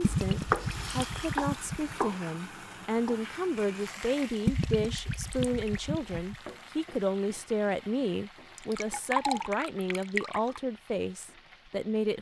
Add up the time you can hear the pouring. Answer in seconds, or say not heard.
6 s.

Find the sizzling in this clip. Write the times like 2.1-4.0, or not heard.
0.0-12.1.